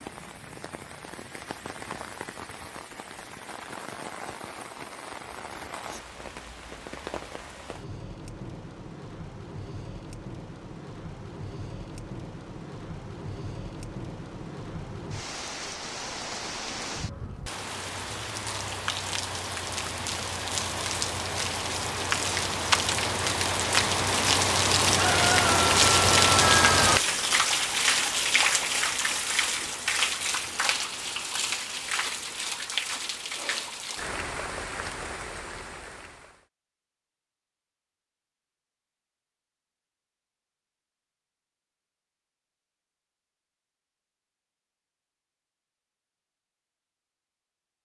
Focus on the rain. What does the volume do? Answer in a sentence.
The loudness of the rain goes up, then down.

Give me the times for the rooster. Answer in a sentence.
The rooster can be heard from 24.9 to 27.0 s.